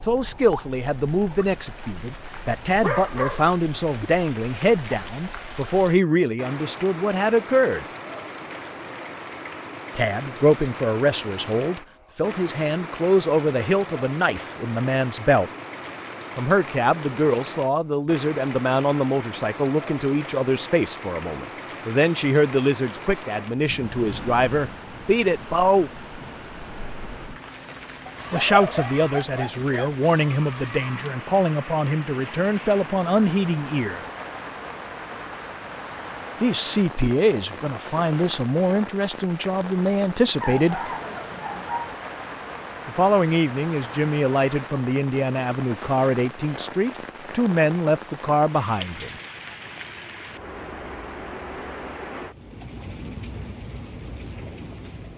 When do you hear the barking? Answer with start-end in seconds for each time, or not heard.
2.6-4.0, 28.1-29.9, 40.4-41.9.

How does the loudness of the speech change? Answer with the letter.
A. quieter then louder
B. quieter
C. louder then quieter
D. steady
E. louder
D.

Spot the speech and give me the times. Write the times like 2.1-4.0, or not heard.
0.0-7.8, 9.9-15.5, 16.4-25.9, 28.3-34.0, 36.4-40.9, 42.9-49.1.